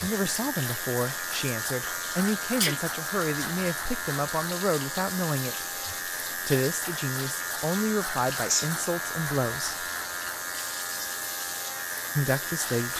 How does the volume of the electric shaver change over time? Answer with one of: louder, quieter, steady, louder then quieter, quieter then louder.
steady.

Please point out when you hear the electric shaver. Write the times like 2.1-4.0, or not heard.
0.0-12.9.